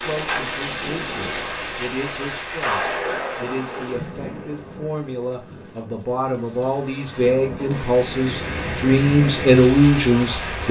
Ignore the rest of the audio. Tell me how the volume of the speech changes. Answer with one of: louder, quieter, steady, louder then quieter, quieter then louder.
louder.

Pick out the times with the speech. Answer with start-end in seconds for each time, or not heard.
0.0-10.6.